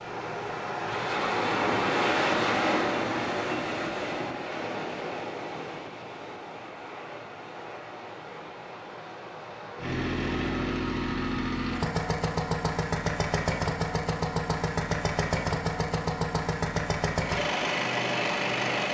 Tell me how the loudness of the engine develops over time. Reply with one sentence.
The loudness of the engine stays about the same.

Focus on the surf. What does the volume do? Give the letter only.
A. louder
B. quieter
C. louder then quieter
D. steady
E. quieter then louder
B.